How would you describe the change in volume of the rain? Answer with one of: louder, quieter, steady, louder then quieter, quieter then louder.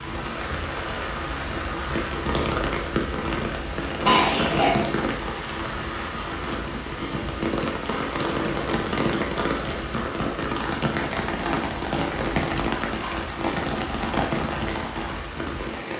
steady.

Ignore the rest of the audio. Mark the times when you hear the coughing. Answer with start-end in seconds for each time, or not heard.
3.6-4.8.